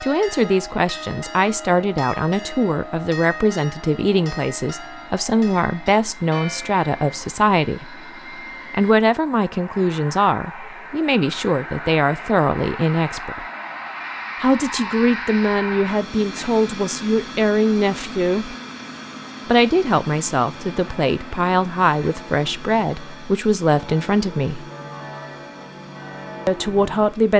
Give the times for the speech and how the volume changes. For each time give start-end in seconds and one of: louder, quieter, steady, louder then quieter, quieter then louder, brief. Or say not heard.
0.0-7.9 steady
8.7-13.4 steady
14.4-18.6 steady
19.4-24.6 steady
26.4-27.3 brief.